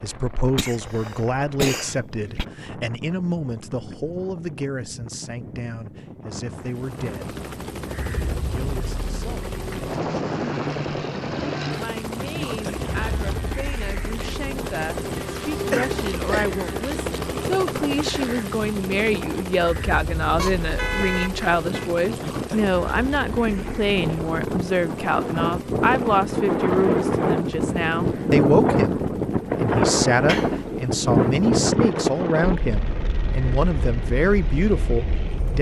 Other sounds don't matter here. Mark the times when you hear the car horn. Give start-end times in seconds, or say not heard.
20.4-21.9.